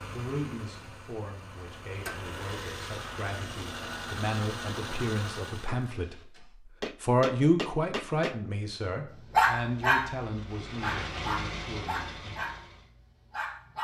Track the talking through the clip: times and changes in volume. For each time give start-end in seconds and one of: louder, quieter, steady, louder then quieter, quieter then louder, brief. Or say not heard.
0.1-12.3 louder then quieter.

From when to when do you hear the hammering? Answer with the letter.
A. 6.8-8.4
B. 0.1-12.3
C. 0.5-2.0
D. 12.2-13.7
A.